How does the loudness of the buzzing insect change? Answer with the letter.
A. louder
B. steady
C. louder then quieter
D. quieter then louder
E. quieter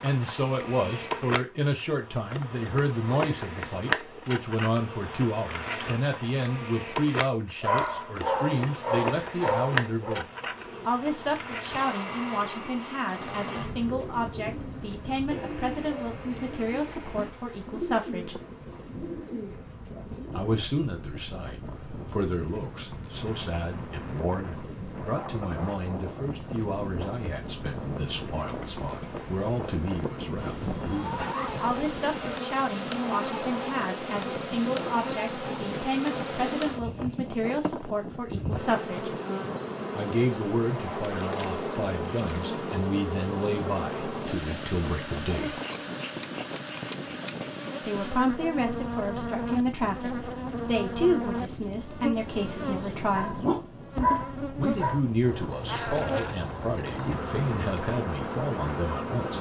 D.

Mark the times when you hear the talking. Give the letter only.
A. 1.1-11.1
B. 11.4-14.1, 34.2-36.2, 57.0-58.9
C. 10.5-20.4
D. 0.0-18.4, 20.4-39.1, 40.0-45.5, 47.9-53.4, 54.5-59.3
D.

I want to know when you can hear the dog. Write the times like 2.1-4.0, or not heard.
7.6-10.2, 30.4-32.4, 53.1-55.0.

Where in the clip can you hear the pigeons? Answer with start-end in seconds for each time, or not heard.
10.5-20.4.